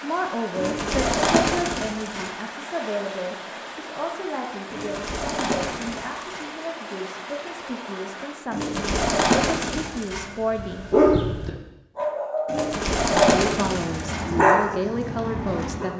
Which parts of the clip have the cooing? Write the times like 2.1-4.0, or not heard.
0.6-2.3, 4.7-6.5, 8.5-10.3, 12.4-14.2.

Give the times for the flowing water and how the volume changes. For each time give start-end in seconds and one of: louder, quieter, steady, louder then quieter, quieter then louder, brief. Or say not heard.
0.0-8.6 steady.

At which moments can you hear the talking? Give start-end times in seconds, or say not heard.
0.0-10.9, 13.2-15.9.